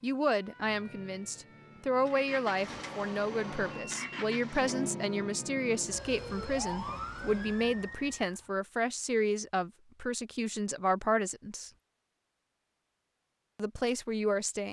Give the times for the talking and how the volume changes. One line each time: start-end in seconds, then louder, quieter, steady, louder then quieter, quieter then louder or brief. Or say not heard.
0.0-11.7 steady
13.6-14.6 brief.